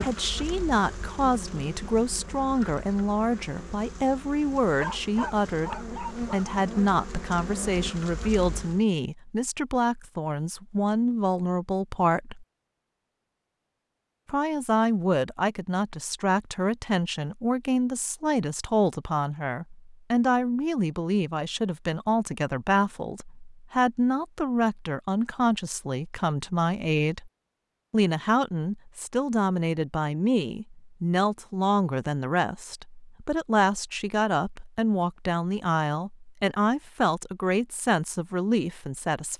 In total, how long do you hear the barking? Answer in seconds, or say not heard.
2 s.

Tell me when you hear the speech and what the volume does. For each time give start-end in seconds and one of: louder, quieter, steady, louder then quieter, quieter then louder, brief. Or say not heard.
0.0-12.4 steady
14.2-27.3 steady
27.9-39.3 steady.